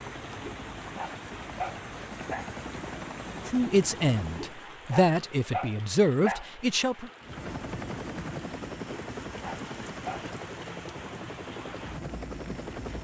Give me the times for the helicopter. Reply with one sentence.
You can hear the helicopter from 0.0 to 4.6 s and from 7.2 to 13.0 s.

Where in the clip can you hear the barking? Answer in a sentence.
The barking can be heard from 0.4 to 2.5 s, from 4.3 to 6.5 s and from 8.9 to 10.3 s.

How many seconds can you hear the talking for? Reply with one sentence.
You can hear the talking for 4 seconds altogether.